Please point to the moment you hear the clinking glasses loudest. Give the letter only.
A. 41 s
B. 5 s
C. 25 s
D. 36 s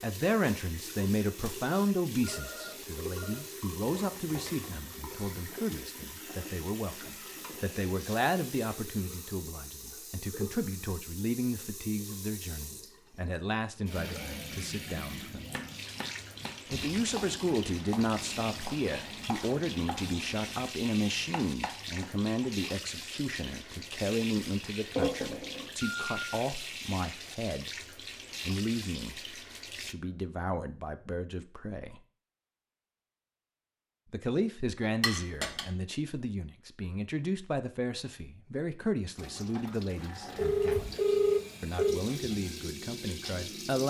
C.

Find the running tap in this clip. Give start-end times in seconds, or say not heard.
0.0-29.9, 39.1-43.8.